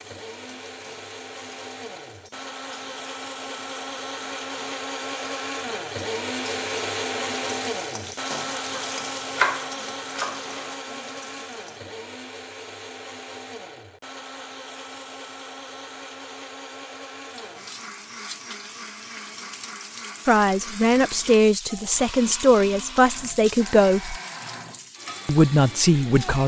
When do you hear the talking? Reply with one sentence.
You can hear the talking from 20.2 to 24.1 s and from 25.2 to 26.4 s.